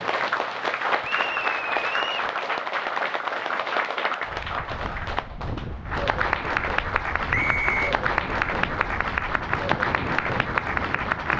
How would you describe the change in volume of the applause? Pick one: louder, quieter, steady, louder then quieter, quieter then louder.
steady.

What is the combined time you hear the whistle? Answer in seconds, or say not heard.
2 s.